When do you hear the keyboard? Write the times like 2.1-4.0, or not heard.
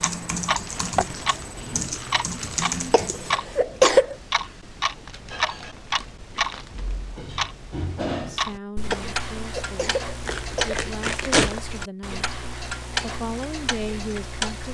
0.0-3.4.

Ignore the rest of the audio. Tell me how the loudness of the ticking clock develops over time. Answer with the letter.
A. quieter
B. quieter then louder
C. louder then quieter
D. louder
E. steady
E.